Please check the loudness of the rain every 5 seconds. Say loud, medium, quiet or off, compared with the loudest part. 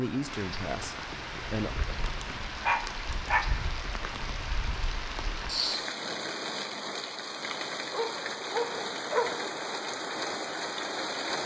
medium, loud, loud.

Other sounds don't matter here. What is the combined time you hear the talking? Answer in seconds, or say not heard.
2 s.